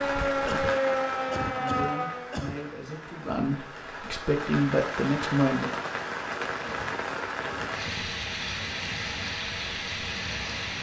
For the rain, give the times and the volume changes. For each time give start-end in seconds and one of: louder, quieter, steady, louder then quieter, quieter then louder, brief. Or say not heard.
0.0-10.7 quieter then louder.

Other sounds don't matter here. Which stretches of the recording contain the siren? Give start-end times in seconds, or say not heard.
0.0-2.4.